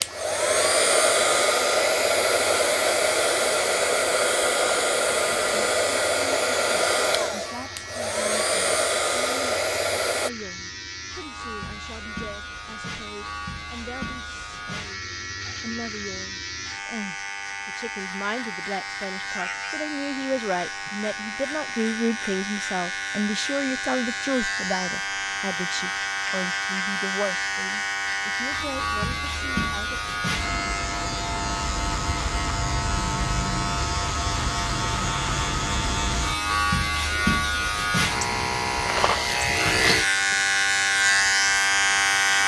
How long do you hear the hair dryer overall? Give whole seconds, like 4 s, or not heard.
10 s.